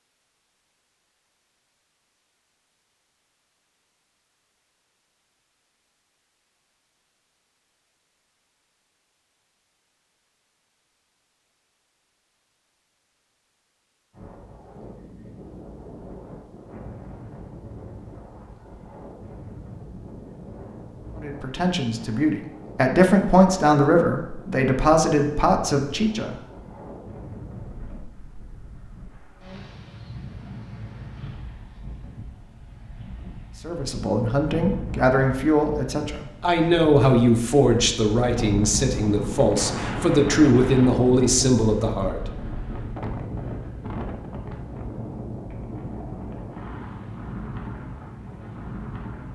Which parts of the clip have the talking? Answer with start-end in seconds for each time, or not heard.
21.2-26.4, 33.6-42.2.